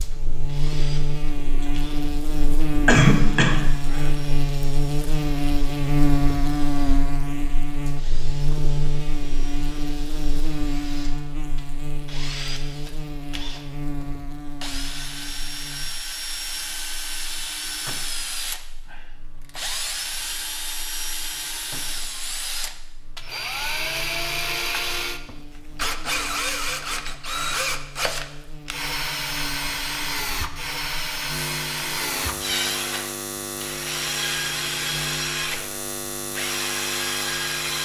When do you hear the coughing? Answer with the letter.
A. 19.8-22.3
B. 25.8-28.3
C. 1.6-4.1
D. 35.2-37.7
C.